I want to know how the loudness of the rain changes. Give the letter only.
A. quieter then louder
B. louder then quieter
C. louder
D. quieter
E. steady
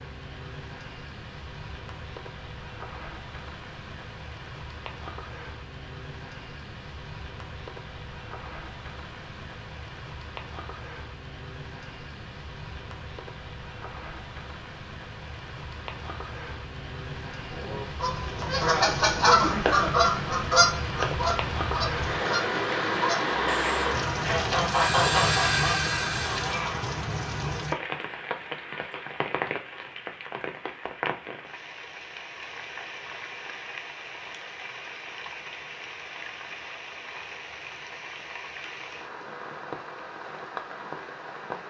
B.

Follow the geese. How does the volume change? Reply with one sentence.
The loudness of the geese goes down, then up.